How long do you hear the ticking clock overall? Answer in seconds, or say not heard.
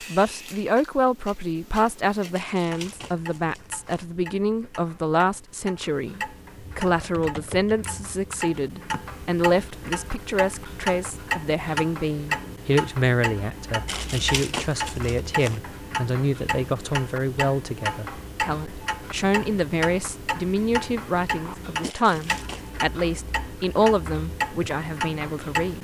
26 s.